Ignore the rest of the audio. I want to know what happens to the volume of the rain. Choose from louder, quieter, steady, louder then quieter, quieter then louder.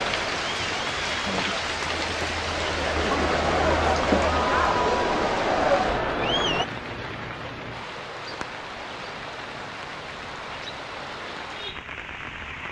quieter.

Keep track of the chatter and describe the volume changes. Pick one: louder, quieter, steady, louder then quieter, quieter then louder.
louder.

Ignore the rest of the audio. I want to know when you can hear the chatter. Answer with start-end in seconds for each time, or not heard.
0.0-6.7.